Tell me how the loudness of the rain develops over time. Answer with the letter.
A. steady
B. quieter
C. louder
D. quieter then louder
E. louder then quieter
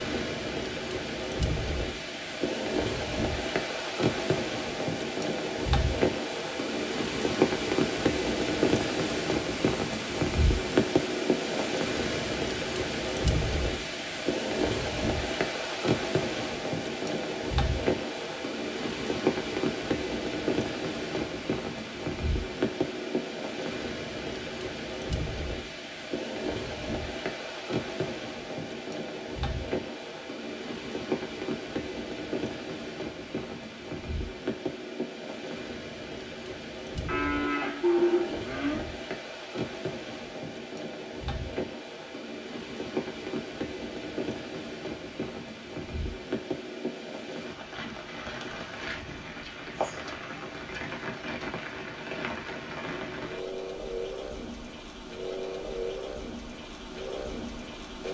B.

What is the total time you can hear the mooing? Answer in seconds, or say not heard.
2 s.